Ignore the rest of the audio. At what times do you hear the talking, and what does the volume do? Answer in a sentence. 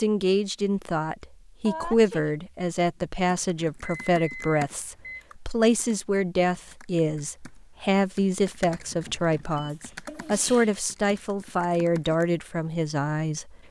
You can hear the talking from 0.0 to 13.6 s, at a steady volume.